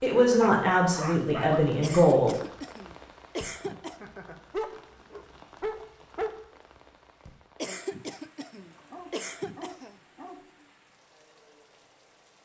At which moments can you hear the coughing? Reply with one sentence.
You can hear the coughing from 1.8 to 4.0 s and from 7.6 to 9.9 s.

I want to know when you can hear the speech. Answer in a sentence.
You can hear the speech from 0.0 to 2.4 s.